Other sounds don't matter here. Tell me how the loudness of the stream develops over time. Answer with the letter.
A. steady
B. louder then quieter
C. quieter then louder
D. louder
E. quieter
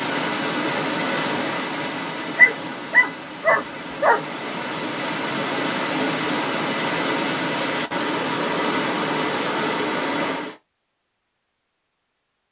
C.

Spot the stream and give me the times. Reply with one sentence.
The stream can be heard from 0.0 to 10.6 s.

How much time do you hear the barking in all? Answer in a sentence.
You can hear the barking for 2 seconds altogether.